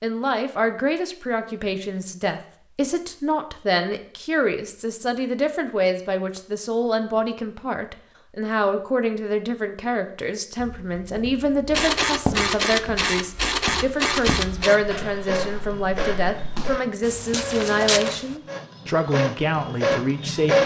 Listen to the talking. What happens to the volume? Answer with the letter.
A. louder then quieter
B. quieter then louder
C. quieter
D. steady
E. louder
D.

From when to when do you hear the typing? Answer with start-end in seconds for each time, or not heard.
not heard.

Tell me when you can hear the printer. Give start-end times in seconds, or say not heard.
11.7-20.6.